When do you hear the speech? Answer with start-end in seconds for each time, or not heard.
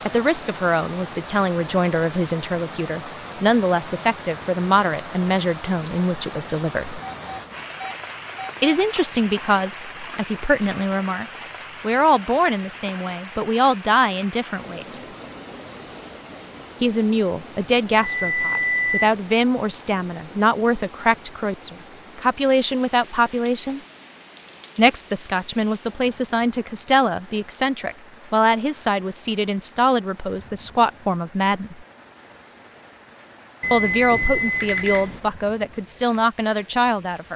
0.0-7.0, 8.6-15.1, 16.8-23.8, 24.8-31.8, 33.7-37.3.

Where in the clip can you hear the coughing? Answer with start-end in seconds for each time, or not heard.
not heard.